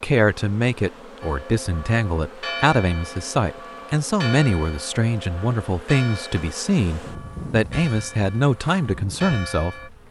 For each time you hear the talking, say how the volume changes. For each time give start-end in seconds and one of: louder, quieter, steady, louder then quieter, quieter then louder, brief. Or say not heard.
0.0-9.9 steady.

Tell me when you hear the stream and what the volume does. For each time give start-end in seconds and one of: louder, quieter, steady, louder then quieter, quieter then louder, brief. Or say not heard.
not heard.